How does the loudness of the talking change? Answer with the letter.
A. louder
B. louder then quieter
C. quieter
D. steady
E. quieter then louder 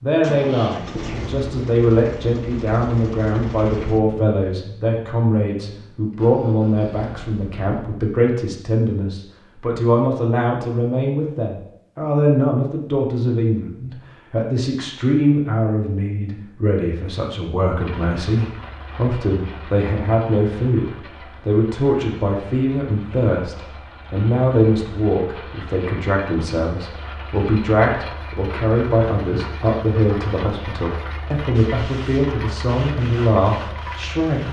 D.